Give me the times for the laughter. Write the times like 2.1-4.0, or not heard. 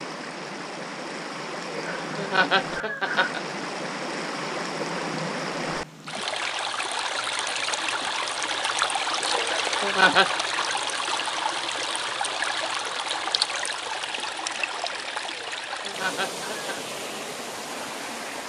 1.6-3.4, 9.3-10.3, 15.3-16.9.